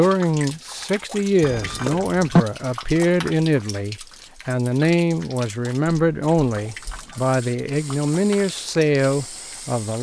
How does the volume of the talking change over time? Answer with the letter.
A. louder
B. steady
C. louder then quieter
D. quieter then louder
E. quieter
B.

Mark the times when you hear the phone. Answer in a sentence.
You can hear the phone from 1.4 to 2.5 s and from 5.9 to 7.2 s.